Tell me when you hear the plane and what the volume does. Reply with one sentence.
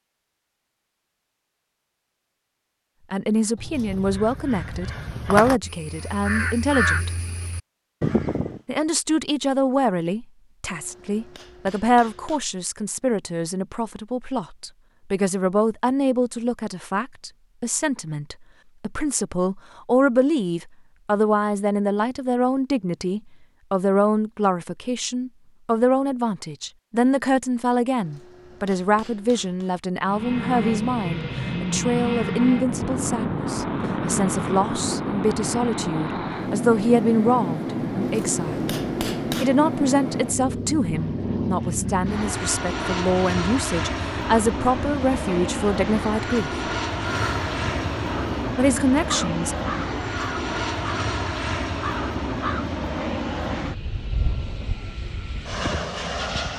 The plane can be heard from 30.0 to 56.5 s, at a steady volume.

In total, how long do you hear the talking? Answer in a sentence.
You can hear the talking for 42 seconds altogether.